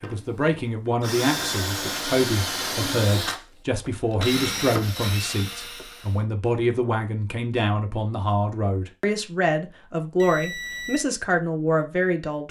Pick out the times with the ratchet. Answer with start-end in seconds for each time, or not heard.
not heard.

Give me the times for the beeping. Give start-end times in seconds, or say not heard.
10.2-11.1.